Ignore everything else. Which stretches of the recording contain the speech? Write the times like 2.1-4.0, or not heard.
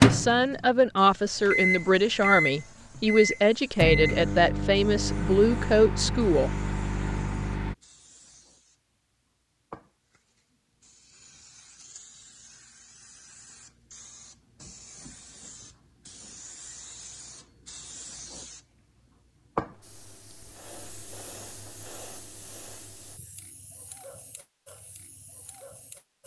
0.0-6.5.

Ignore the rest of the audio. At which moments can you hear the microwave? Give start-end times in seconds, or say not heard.
0.0-7.8.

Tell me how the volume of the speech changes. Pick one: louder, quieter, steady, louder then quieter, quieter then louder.
steady.